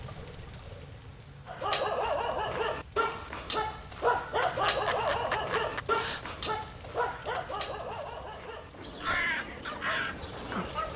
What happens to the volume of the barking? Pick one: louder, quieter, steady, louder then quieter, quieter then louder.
quieter.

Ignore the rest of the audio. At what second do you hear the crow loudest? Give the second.
9 s.